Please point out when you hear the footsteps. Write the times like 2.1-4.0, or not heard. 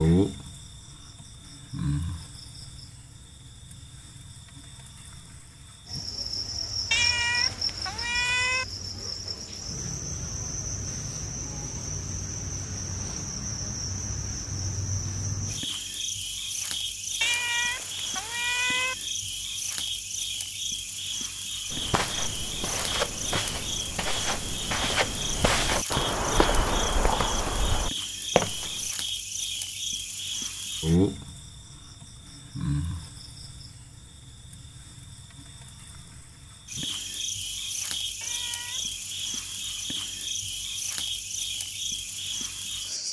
21.7-28.9.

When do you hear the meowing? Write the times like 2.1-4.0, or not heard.
6.9-8.7, 17.2-18.9, 38.2-39.0.